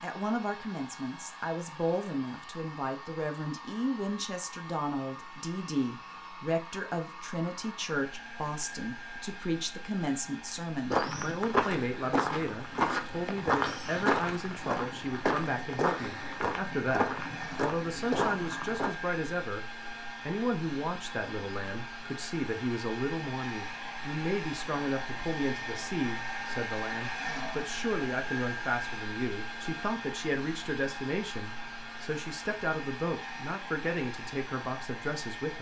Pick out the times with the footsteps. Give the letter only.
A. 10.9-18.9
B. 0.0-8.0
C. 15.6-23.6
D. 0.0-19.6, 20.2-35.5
A.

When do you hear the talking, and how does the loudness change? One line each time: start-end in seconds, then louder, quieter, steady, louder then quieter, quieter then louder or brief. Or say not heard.
0.0-19.6 steady
20.2-35.5 steady.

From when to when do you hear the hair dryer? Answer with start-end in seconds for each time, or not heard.
0.0-35.5.